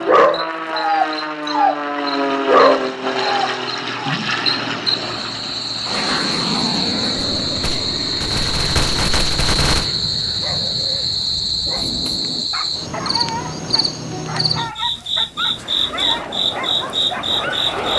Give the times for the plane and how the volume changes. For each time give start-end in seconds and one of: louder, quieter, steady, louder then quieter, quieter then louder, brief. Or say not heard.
0.0-12.5 quieter
15.2-17.9 brief.